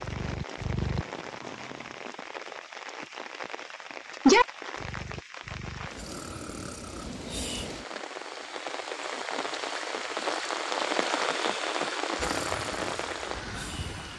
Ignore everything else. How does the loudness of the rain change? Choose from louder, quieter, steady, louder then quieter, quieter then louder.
louder.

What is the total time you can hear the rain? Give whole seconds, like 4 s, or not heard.
14 s.